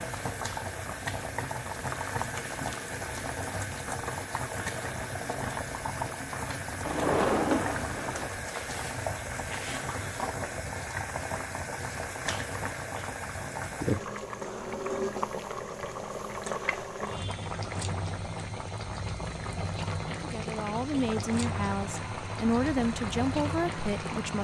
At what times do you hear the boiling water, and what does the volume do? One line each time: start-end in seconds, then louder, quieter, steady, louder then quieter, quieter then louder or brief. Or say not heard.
0.0-24.3 steady.